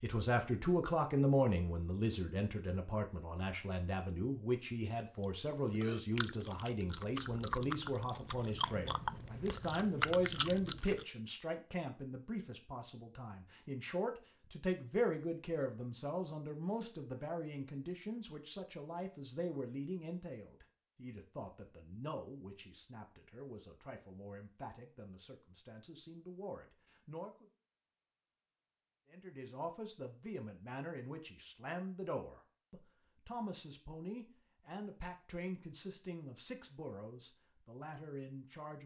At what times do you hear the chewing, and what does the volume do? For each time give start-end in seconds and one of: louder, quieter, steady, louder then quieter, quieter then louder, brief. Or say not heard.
5.2-11.1 louder.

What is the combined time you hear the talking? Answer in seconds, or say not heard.
37 s.